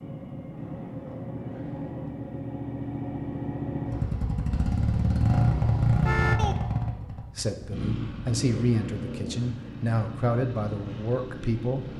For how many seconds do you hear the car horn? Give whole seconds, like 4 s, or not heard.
2 s.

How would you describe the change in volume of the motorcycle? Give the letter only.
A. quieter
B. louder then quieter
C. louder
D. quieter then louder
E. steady
B.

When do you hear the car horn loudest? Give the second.
6 s.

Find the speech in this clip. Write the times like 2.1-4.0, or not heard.
7.3-11.9.